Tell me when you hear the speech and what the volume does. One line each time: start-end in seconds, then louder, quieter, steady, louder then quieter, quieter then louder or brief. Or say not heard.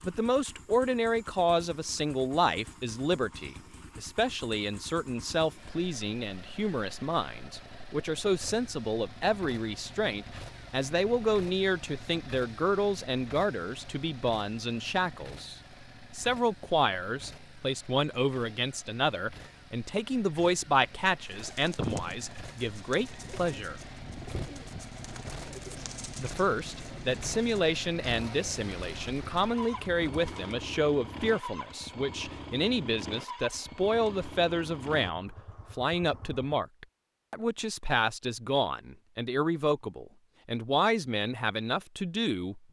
0.0-23.8 steady
26.1-42.6 steady.